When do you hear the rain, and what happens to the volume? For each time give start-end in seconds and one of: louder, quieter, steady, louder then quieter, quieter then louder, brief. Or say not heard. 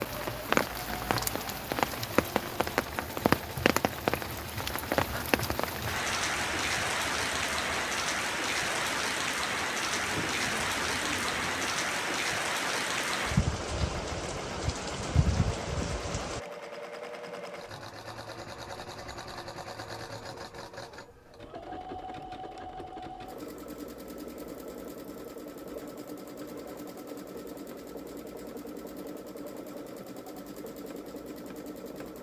0.0-16.4 steady.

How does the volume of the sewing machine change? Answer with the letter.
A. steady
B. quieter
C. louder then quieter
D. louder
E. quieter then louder
A.